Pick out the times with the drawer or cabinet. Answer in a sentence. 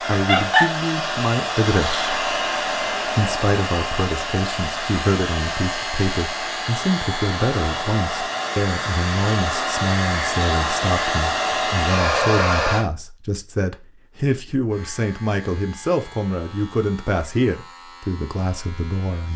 The drawer or cabinet can't be heard in this clip.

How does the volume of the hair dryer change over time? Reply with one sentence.
The volume of the hair dryer goes down, then up.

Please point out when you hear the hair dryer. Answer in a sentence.
The hair dryer can be heard from 0.0 to 12.8 s.